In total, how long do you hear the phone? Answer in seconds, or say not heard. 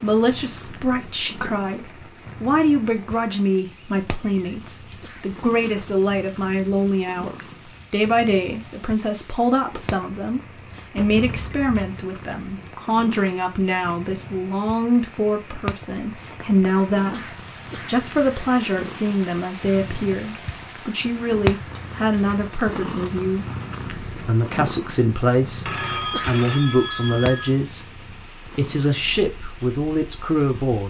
3 s.